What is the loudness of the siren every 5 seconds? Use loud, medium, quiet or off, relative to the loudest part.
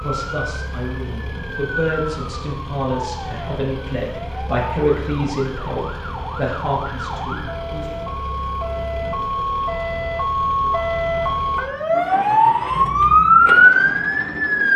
quiet, quiet, loud.